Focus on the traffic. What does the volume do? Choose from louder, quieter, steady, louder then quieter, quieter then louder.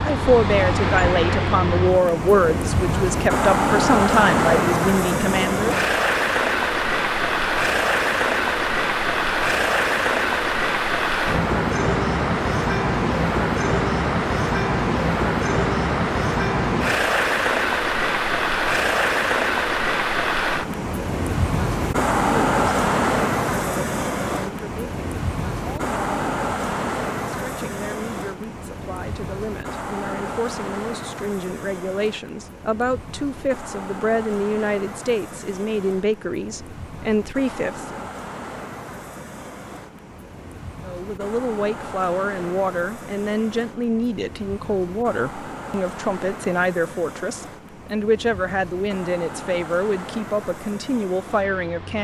quieter.